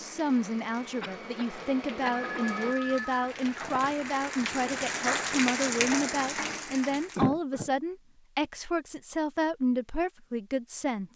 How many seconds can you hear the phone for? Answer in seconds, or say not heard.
2 s.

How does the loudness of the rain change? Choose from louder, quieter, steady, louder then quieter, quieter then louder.
louder.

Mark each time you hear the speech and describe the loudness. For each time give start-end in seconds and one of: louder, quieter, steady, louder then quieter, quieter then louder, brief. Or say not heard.
0.0-11.1 steady.